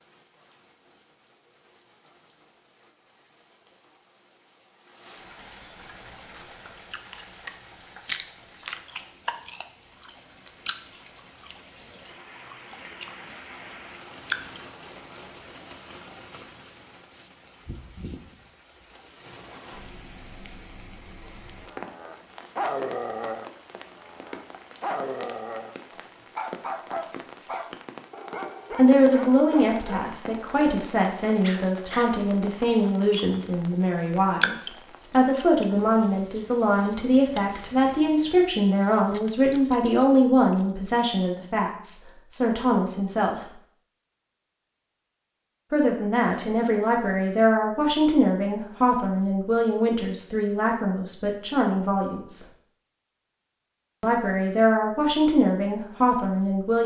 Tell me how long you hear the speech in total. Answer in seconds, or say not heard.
24 s.